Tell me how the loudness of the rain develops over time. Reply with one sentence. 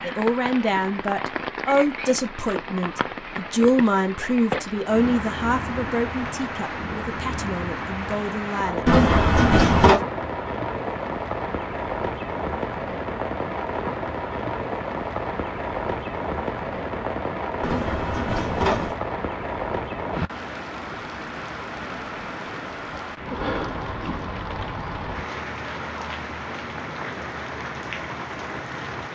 The loudness of the rain stays about the same.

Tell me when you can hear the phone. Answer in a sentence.
The phone can be heard from 8.8 to 10.0 s and from 17.6 to 18.9 s.